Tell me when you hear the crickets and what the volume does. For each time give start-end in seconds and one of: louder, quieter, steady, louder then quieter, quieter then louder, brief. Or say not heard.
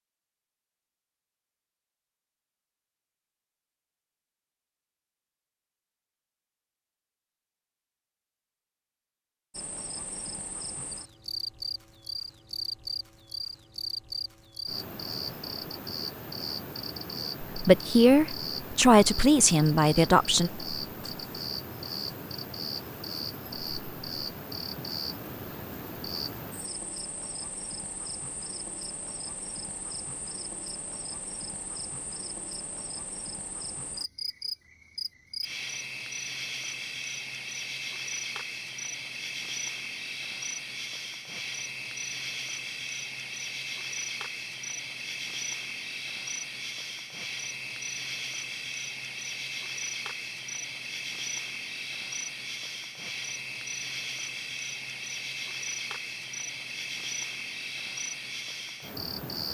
9.5-59.4 steady.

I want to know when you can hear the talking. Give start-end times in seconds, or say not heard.
17.6-20.5.